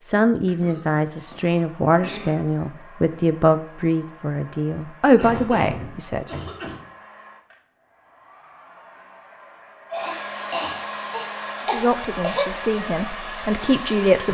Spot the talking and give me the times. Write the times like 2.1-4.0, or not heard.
0.1-6.3, 11.7-14.2.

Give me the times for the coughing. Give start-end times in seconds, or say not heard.
0.6-2.4, 5.2-6.8, 9.9-12.4.